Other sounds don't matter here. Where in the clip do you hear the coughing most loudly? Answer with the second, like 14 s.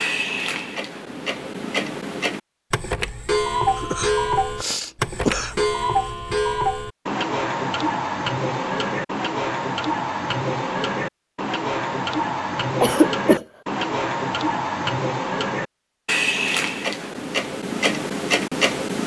13 s.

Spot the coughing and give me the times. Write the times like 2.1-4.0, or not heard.
3.8-5.7, 12.8-13.4.